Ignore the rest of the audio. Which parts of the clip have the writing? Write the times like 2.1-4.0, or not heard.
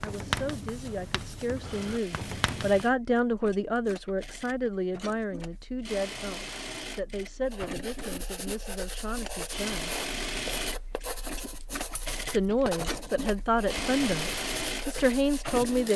0.0-3.0, 7.5-15.9.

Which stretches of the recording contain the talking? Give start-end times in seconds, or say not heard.
0.0-9.9, 12.3-15.9.